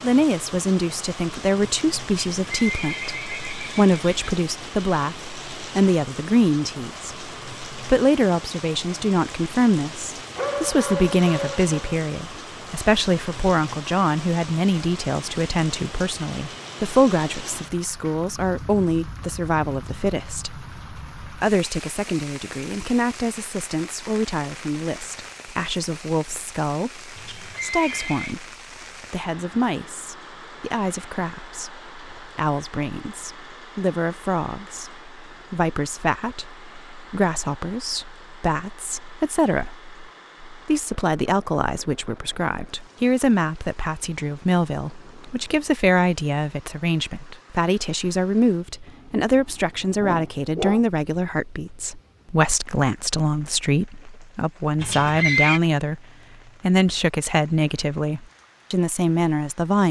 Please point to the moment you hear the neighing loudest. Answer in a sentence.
The volume of the neighing peaks at 55 seconds.